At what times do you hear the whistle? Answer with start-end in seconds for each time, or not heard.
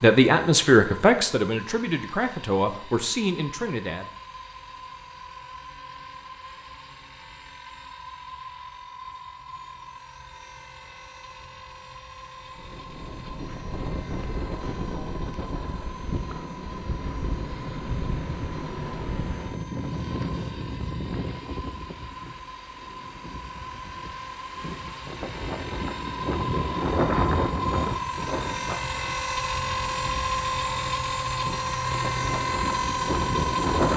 not heard.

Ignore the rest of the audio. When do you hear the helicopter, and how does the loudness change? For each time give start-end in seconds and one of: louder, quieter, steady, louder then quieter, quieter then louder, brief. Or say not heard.
0.0-33.9 louder.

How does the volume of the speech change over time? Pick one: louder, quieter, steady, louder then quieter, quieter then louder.
quieter.